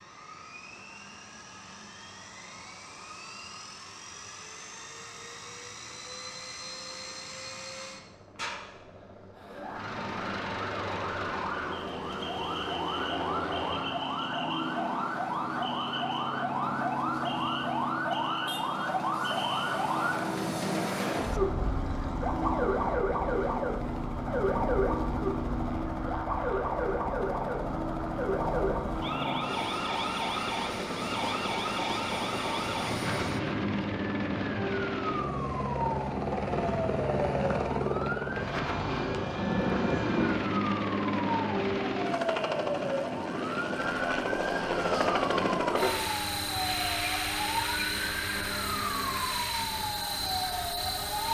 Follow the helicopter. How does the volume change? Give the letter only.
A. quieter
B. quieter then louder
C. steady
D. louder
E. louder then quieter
D.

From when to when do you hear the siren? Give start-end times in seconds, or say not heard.
9.3-51.2.